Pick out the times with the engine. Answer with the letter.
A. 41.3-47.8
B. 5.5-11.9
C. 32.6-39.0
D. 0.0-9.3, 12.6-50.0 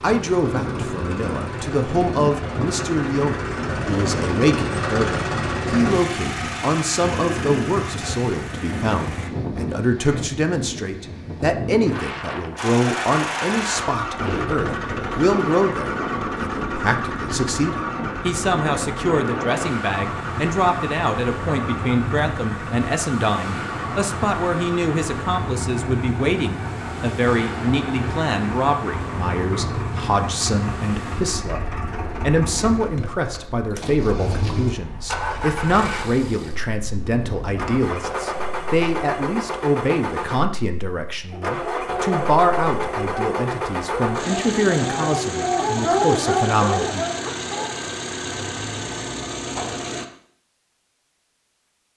D.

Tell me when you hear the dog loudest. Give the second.
46 s.